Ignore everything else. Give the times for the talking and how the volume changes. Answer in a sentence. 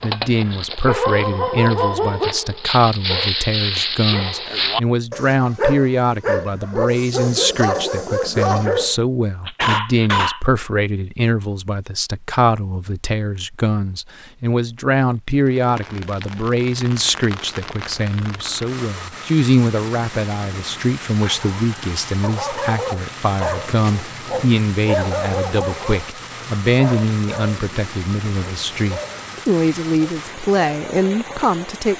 The talking can be heard from 0.0 to 31.9 s, at a steady volume.